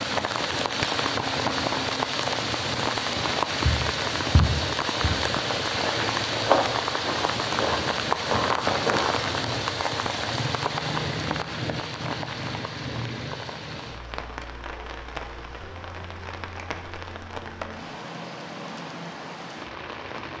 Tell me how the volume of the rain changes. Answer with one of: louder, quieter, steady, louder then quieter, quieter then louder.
quieter.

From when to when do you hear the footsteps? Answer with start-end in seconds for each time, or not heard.
3.6-9.2.